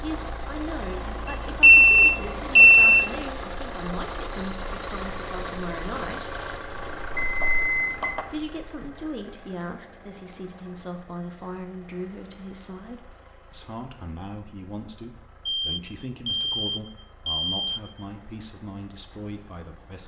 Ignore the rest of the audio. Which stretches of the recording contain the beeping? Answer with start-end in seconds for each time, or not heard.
1.6-3.1, 6.7-8.2, 15.4-17.9.